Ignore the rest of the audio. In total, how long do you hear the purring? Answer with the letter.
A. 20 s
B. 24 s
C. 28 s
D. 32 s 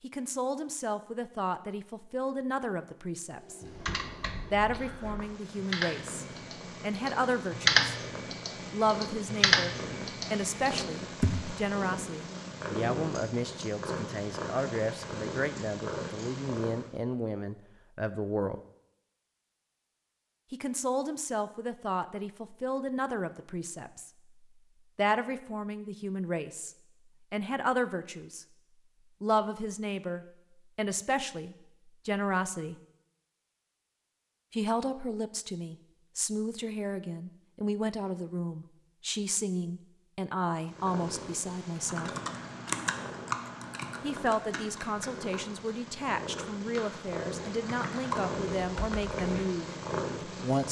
B.